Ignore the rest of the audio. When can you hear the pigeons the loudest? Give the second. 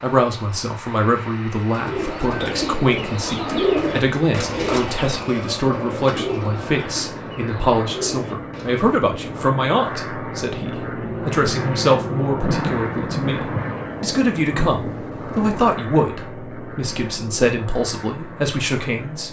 4 s.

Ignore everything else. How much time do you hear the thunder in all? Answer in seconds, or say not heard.
3 s.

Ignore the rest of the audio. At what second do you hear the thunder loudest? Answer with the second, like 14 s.
13 s.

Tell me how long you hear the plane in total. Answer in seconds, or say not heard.
19 s.